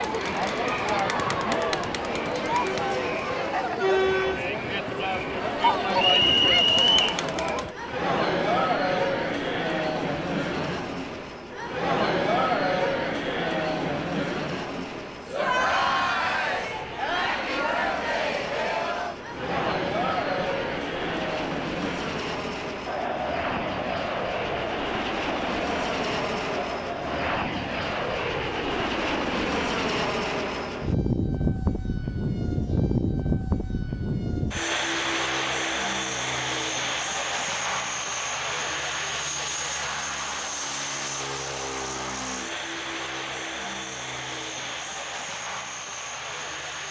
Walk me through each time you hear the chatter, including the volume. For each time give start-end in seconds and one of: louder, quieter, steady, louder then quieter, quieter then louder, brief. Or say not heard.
0.0-27.4 quieter.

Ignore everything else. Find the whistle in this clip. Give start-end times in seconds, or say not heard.
6.0-7.2.